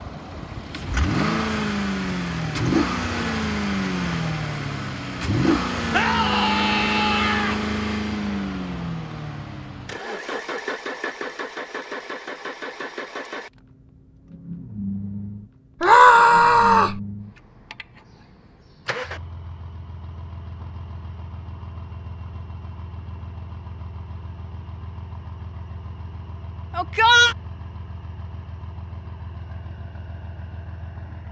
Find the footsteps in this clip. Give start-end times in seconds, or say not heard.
not heard.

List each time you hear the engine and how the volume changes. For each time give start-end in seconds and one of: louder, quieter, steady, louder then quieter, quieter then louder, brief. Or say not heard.
0.0-31.2 quieter.